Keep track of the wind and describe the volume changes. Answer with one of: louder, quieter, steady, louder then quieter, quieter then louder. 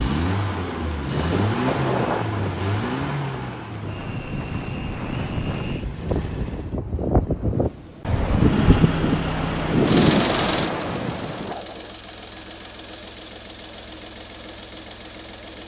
louder.